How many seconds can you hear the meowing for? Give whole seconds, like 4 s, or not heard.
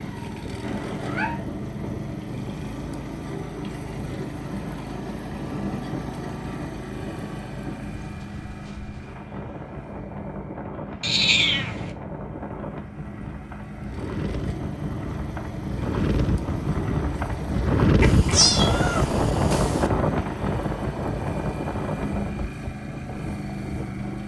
4 s.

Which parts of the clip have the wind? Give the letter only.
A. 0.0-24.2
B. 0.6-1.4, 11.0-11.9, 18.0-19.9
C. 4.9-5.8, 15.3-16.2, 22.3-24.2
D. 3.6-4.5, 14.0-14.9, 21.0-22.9
A.